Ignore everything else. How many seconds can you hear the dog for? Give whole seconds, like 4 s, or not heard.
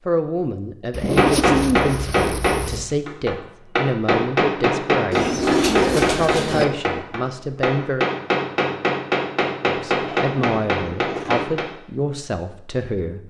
not heard.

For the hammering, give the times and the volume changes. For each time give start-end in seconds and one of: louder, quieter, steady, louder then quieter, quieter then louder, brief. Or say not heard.
1.0-11.7 steady.